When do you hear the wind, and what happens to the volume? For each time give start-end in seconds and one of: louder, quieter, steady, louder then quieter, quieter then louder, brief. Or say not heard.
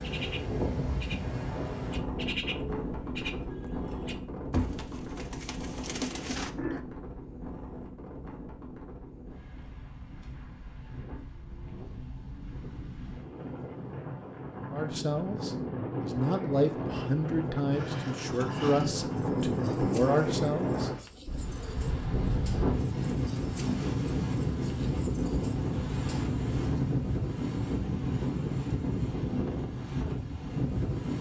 0.0-31.1 quieter then louder.